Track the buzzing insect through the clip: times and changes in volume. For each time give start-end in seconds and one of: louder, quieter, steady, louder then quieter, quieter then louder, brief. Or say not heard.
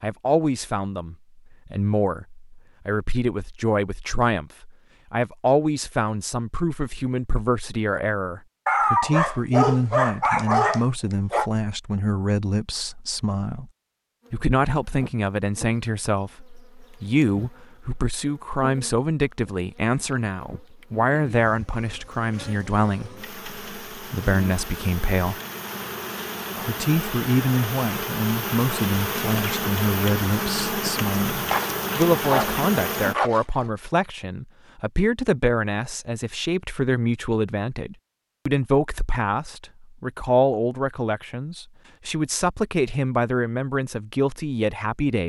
14.2-33.1 louder.